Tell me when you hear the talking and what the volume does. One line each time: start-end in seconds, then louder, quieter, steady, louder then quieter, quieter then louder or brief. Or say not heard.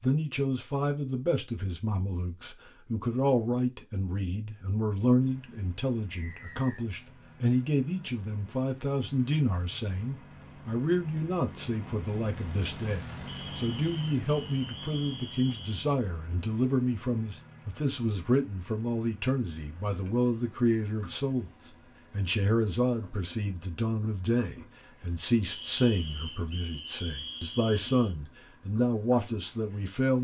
0.0-21.5 steady
22.1-30.1 steady.